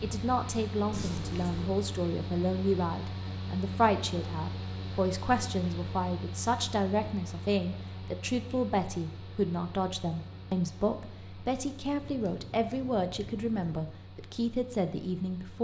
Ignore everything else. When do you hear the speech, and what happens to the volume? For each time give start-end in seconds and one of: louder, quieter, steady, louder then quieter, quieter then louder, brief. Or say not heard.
0.0-15.5 steady.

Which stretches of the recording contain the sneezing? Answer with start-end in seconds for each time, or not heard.
not heard.